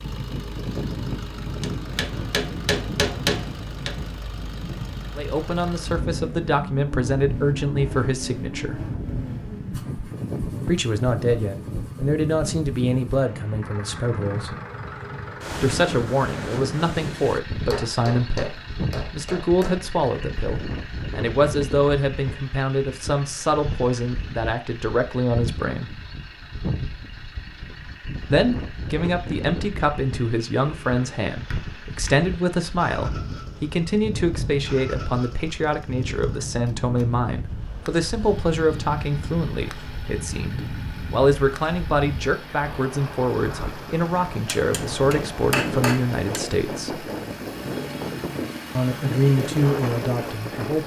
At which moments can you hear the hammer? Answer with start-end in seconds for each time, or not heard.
1.6-4.2, 17.7-19.8, 30.6-32.1, 44.5-46.5.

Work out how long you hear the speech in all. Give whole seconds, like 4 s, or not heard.
39 s.